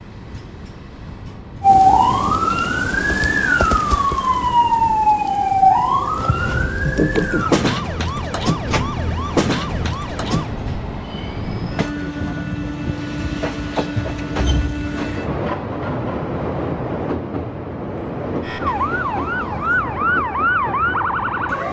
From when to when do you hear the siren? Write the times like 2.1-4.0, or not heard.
1.6-10.6, 18.4-21.6.